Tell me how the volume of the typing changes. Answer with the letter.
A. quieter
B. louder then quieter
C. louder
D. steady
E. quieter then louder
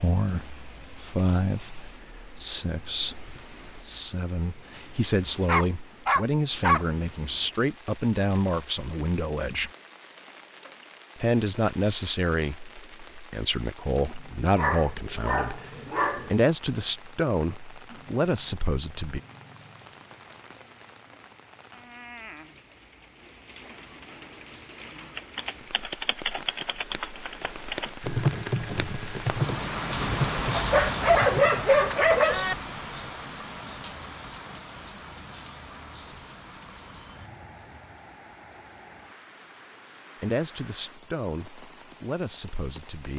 B.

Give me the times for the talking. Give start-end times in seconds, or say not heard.
0.0-9.7, 11.2-19.2, 40.2-43.1.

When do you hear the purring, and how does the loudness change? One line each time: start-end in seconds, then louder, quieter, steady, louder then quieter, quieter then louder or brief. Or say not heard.
not heard.